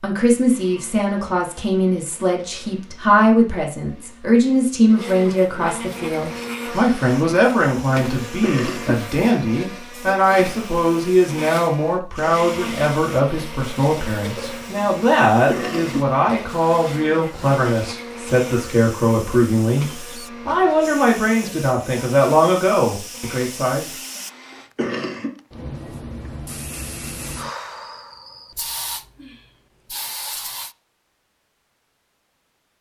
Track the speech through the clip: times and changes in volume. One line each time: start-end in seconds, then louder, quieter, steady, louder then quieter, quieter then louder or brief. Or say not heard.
0.0-23.9 steady.